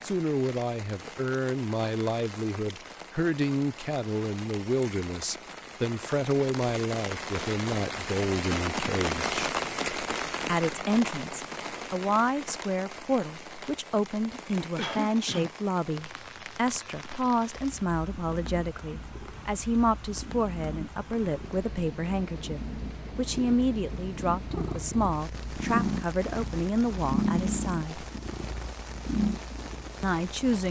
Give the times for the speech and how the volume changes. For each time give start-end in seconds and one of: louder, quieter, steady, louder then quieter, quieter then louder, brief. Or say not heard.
0.0-9.5 steady
10.4-28.1 steady
30.0-30.6 brief.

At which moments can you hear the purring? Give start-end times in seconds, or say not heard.
17.6-30.6.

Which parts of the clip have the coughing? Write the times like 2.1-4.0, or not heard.
14.8-15.5.